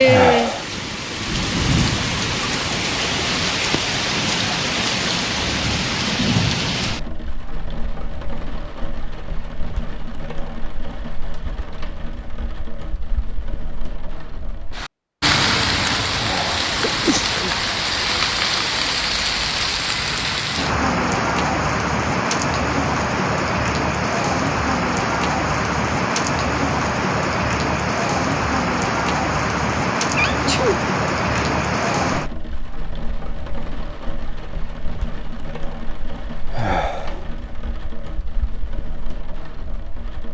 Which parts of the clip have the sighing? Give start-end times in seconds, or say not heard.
0.0-0.7, 16.1-16.6, 36.5-37.2.